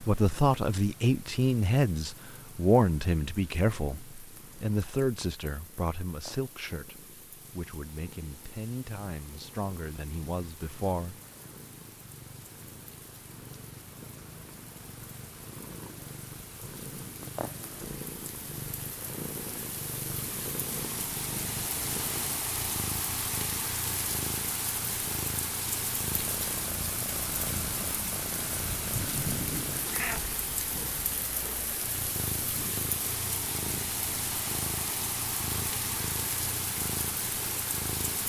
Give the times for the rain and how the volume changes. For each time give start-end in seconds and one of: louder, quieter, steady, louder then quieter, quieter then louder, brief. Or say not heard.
0.0-38.2 louder.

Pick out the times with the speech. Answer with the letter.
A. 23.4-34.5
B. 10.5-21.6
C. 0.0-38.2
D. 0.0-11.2
D.